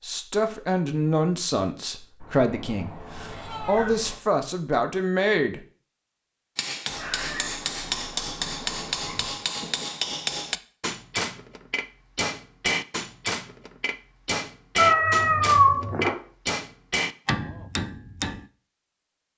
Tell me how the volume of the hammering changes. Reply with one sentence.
The loudness of the hammering stays about the same.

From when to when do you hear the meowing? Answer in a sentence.
You can hear the meowing from 2.2 to 4.2 s, from 6.8 to 9.3 s and from 14.8 to 16.1 s.